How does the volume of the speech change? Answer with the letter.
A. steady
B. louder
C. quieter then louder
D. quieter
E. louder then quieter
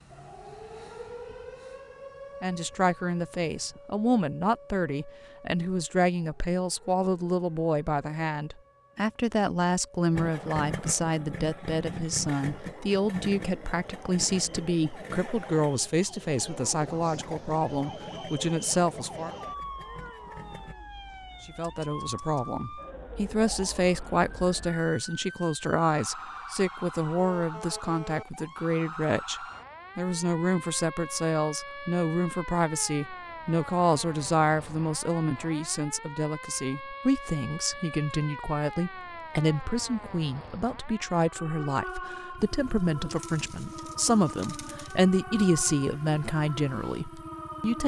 A.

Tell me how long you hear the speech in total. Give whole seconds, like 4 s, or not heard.
43 s.